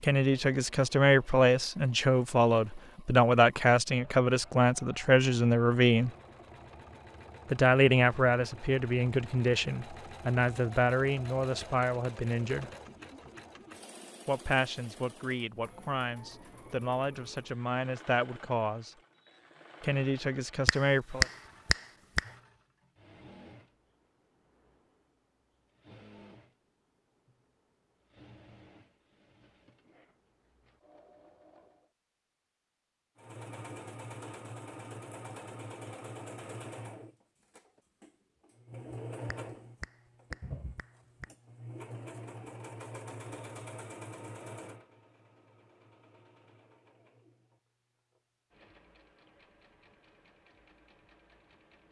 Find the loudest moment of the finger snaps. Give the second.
21 s.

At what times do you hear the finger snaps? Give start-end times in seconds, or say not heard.
20.6-22.2, 39.2-41.2.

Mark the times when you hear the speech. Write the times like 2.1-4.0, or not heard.
0.0-6.1, 7.5-12.7, 14.2-18.9, 19.8-21.2.